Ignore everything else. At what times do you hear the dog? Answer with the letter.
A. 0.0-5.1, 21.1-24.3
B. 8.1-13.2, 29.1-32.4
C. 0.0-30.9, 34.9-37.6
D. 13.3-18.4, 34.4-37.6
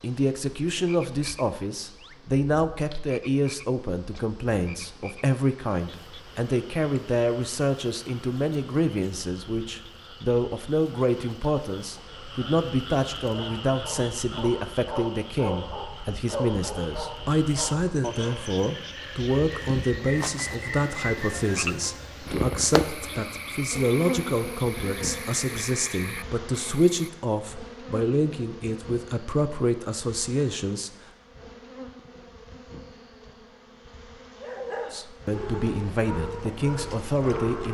D.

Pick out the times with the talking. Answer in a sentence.
The talking can be heard from 0.0 to 30.9 s and from 34.9 to 37.6 s.